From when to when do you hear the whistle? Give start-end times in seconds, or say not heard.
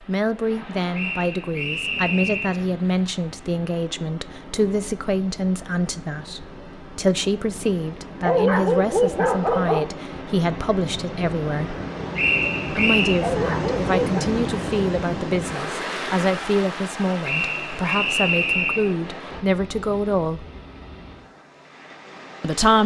0.9-2.6, 12.2-13.2, 17.2-18.9.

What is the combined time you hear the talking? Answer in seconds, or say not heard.
20 s.